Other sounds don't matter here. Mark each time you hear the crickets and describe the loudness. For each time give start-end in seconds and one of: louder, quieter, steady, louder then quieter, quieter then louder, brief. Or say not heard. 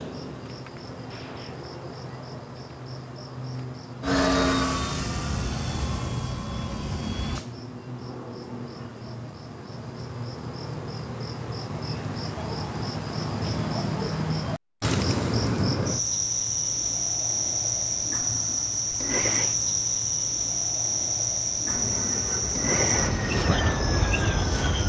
0.0-24.8 louder.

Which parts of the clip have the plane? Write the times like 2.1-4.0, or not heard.
4.0-7.5, 21.6-24.8.